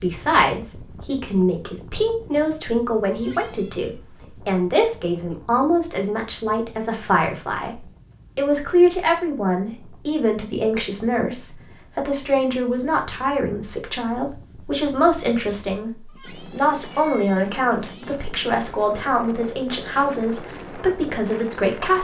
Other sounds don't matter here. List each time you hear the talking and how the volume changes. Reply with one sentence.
The talking can be heard from 0.0 to 21.9 s, at a steady volume.